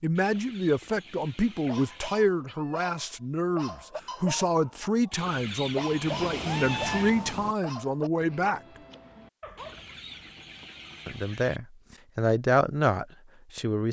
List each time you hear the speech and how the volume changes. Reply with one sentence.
The speech can be heard from 0.0 to 8.6 s, at a steady volume; and briefly from 11.1 to 13.8 s.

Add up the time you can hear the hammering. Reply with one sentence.
The hammering can't be heard in this clip.